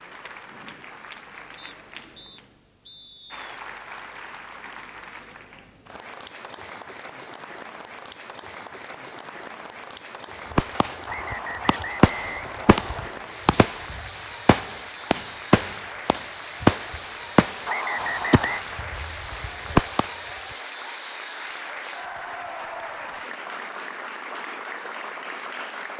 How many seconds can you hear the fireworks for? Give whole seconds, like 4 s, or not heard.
10 s.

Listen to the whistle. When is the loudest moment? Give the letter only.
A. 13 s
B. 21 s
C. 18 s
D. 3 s
C.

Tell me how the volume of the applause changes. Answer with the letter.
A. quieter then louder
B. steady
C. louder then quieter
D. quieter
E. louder
E.